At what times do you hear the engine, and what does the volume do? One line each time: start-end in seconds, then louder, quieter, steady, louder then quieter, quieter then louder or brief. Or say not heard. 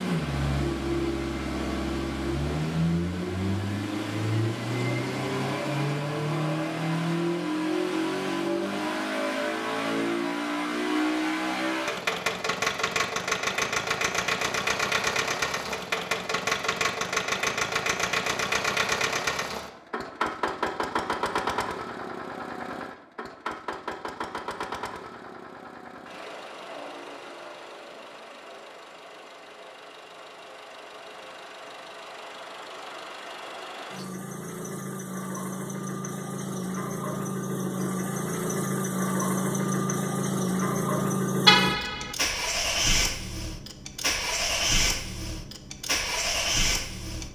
0.0-47.3 quieter then louder.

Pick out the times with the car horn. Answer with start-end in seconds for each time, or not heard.
41.5-42.1.